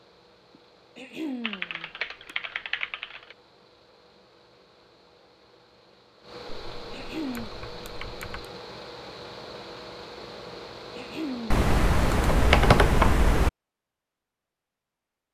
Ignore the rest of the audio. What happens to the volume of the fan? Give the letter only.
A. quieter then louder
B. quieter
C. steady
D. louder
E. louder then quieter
D.